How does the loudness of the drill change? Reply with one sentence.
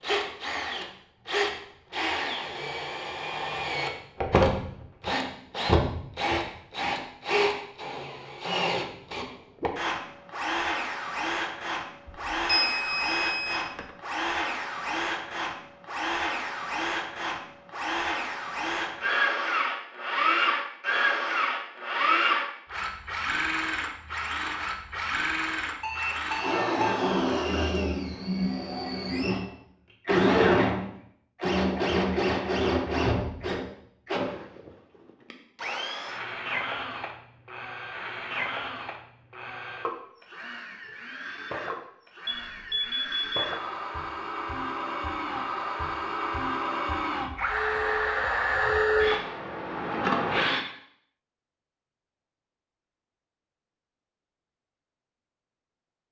The loudness of the drill stays about the same.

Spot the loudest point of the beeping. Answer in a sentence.
The loudest moment of the beeping is at 13 seconds.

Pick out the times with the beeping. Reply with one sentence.
The beeping can be heard from 12.1 to 13.9 s, from 25.8 to 27.8 s and from 42.2 to 43.5 s.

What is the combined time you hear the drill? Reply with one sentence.
You can hear the drill for 51 seconds altogether.